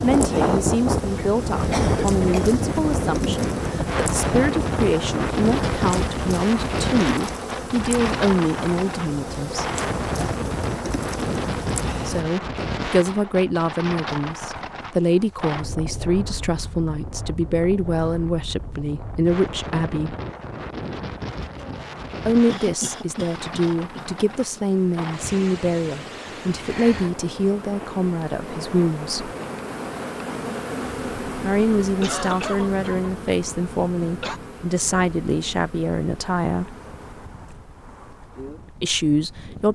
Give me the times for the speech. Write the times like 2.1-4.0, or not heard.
0.0-9.7, 12.1-20.1, 22.2-29.3, 31.4-36.8, 38.8-39.7.